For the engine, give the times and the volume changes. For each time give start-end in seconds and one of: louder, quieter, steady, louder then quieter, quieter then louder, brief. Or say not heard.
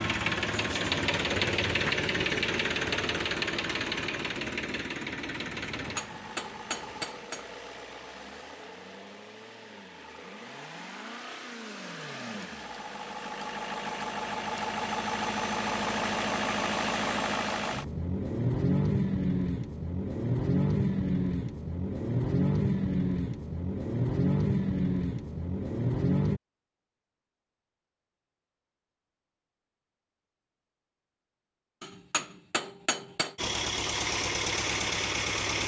0.0-26.4 quieter then louder
33.4-35.6 brief.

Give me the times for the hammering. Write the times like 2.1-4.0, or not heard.
5.8-7.5, 31.8-33.4.